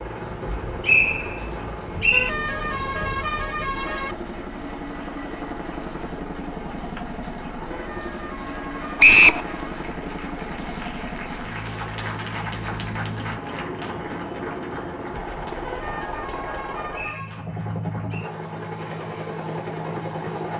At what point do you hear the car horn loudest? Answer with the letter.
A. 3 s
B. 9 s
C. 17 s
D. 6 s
A.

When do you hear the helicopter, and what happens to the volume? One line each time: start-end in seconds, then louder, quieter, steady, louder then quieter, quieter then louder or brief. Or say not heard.
0.0-20.5 steady.